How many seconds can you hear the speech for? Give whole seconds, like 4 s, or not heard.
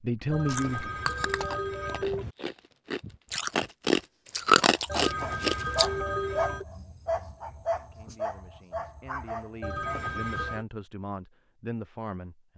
6 s.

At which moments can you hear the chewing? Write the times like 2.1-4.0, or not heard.
0.5-5.8.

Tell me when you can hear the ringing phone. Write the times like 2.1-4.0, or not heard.
0.3-2.4, 4.8-6.7, 9.6-10.7.